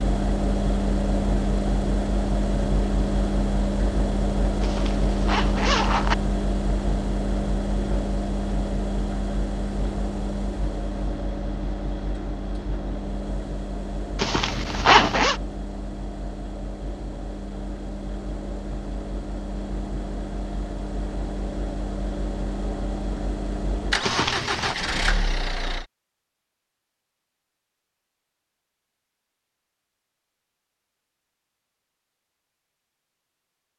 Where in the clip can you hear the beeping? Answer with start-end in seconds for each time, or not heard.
not heard.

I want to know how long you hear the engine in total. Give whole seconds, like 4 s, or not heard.
26 s.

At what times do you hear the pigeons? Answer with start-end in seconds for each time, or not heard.
not heard.